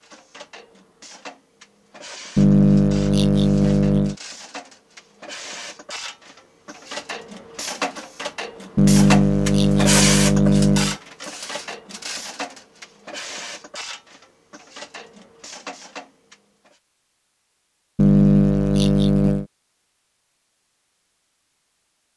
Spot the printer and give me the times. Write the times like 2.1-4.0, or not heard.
0.0-16.8.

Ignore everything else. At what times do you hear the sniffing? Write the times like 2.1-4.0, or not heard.
2.4-4.2, 8.8-10.9, 17.9-19.4.